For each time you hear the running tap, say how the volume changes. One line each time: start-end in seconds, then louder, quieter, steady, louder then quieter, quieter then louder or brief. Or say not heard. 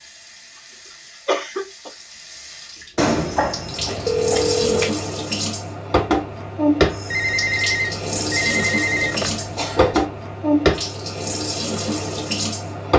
0.0-12.9 louder.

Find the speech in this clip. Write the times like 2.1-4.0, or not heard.
not heard.